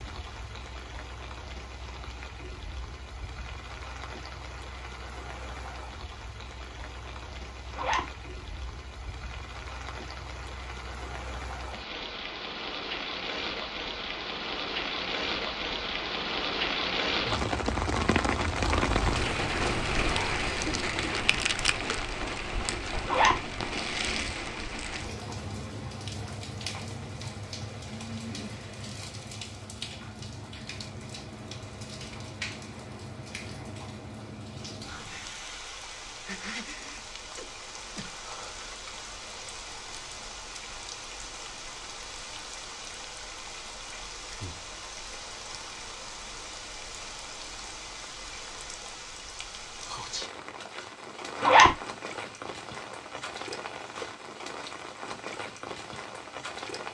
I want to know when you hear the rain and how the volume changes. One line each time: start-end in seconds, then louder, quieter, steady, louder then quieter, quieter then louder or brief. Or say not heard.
0.0-56.9 louder then quieter.